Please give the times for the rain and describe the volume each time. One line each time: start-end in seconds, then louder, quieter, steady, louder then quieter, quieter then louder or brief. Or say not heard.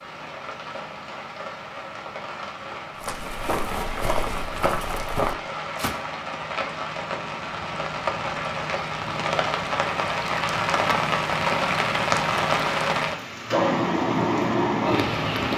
0.0-15.5 louder.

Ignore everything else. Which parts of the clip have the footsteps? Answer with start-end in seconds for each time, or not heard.
3.0-6.0.